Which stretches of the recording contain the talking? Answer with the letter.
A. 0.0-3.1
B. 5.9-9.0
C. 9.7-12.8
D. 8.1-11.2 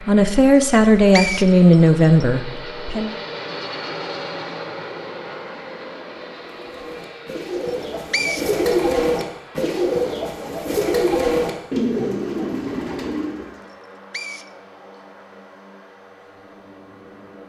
A.